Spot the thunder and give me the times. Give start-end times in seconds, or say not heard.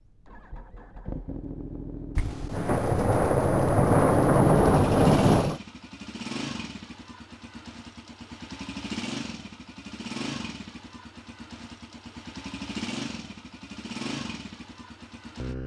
2.1-5.6.